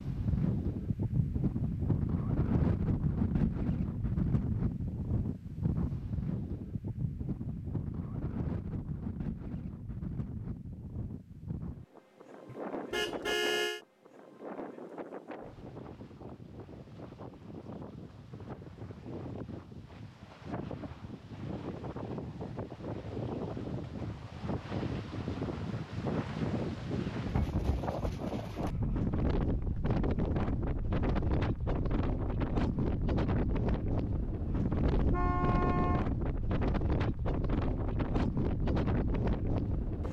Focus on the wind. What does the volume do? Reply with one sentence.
The loudness of the wind goes down, then up.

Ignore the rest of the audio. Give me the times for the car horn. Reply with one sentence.
The car horn can be heard from 12.4 to 13.8 s and from 34.9 to 36.0 s.